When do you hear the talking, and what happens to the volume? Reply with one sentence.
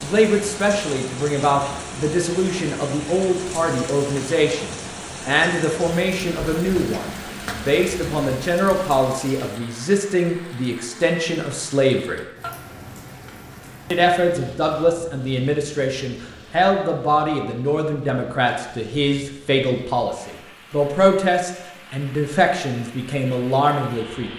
The talking can be heard from 0.0 to 12.2 s, at a steady volume; and from 13.9 to 24.3 s, at a steady volume.